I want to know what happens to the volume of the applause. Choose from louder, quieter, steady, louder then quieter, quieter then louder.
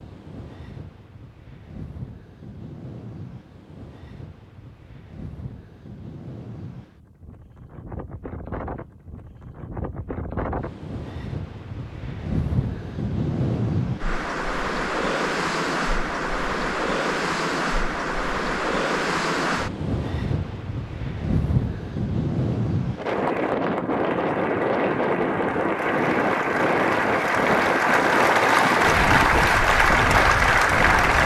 louder.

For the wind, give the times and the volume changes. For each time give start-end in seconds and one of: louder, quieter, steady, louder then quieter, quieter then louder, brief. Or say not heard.
0.0-31.2 louder.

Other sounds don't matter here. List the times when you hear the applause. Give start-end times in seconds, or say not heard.
23.0-31.2.